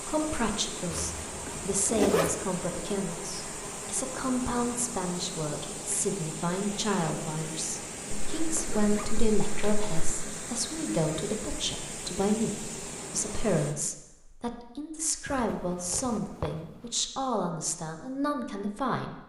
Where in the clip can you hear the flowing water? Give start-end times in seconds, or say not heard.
0.0-13.8.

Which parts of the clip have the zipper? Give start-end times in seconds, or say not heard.
0.9-2.4, 8.1-9.9, 15.2-16.6.